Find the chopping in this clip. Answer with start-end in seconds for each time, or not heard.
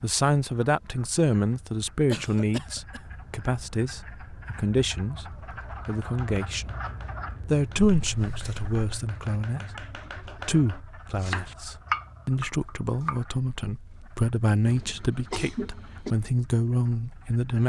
5.8-13.2.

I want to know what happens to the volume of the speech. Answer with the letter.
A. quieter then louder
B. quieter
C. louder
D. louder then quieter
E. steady
E.